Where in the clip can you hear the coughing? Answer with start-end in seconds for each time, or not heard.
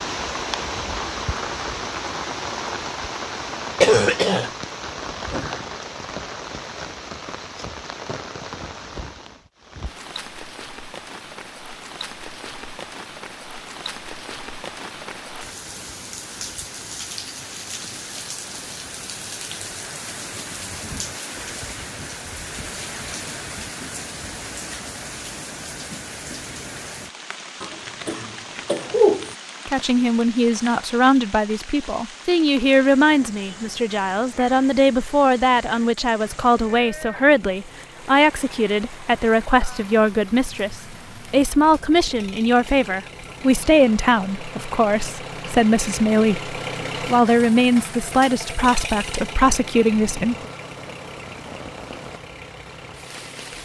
3.8-4.5, 27.6-29.4.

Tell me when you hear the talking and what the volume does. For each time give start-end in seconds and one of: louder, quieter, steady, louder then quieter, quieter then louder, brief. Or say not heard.
29.6-50.5 steady.